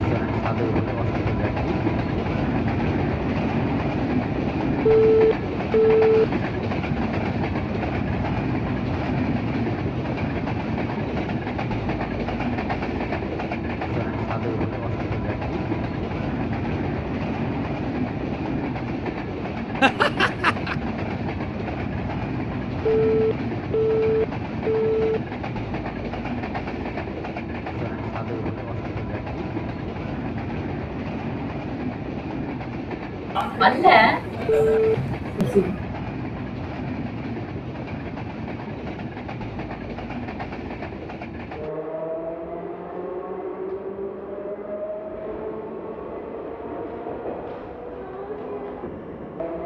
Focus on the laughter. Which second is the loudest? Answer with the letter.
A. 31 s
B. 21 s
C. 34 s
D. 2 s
C.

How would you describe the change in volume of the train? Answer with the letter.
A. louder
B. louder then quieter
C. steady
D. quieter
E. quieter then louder
D.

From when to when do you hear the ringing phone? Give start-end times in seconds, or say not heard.
4.8-6.2, 22.9-25.2, 34.5-35.0.